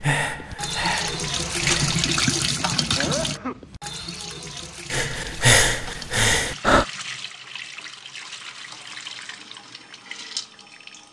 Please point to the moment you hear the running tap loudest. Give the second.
2 s.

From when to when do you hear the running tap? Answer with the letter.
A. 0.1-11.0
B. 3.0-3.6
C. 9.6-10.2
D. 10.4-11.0
A.